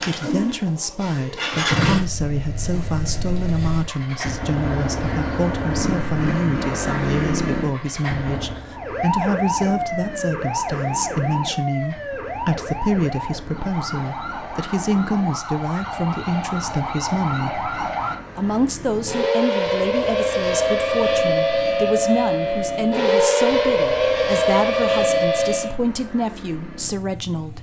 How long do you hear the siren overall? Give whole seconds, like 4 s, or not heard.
17 s.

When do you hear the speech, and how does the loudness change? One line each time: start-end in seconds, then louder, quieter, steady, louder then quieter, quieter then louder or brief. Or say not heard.
0.1-17.6 steady
18.4-27.5 steady.